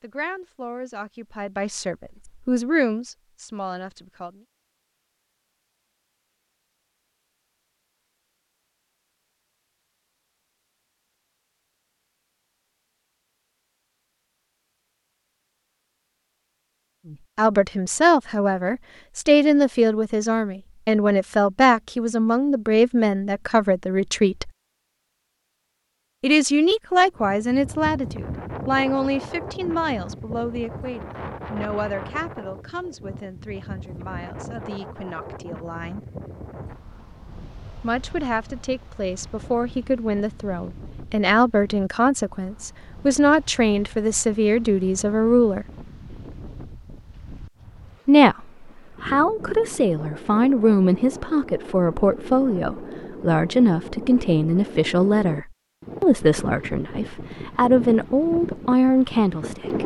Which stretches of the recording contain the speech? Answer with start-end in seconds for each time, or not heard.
0.0-4.5, 17.1-24.5, 26.2-36.0, 37.8-45.6, 48.0-59.8.